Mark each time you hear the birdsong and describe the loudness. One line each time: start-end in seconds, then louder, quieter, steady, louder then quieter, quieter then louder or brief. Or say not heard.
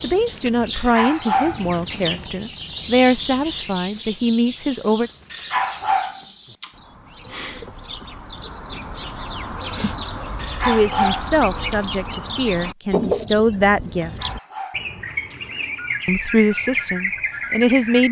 0.0-18.0 quieter then louder.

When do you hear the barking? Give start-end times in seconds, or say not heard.
0.7-2.1, 5.3-6.7, 10.4-11.8, 13.9-15.3.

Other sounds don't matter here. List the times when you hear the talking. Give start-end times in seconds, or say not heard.
0.0-5.1, 10.7-14.1, 16.1-18.0.